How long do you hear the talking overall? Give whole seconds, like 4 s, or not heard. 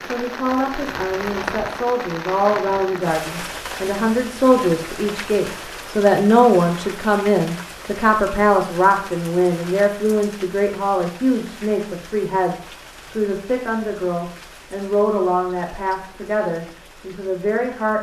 18 s.